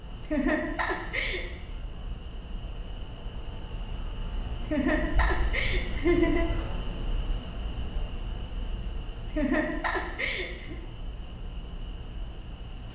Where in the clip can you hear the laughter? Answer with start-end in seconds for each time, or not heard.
0.2-1.4, 4.6-6.5, 9.2-10.8.